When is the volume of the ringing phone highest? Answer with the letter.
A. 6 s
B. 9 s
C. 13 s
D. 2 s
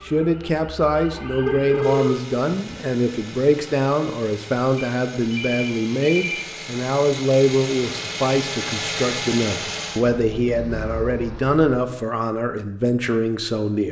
D.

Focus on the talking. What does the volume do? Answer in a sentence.
The loudness of the talking stays about the same.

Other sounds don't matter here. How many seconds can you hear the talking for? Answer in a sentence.
The talking can be heard for 14 seconds in total.